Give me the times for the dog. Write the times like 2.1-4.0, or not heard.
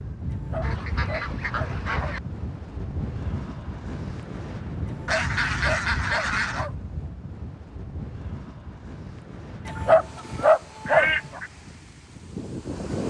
0.3-2.1, 4.8-6.8, 9.7-11.4.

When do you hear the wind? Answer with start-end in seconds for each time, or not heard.
0.0-13.0.